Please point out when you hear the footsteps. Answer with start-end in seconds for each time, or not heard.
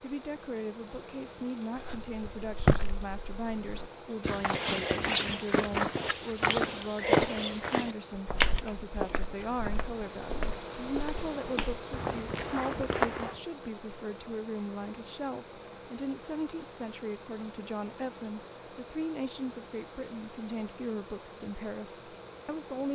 1.8-13.3.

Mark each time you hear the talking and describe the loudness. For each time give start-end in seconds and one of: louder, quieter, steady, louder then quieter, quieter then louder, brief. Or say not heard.
0.0-22.9 steady.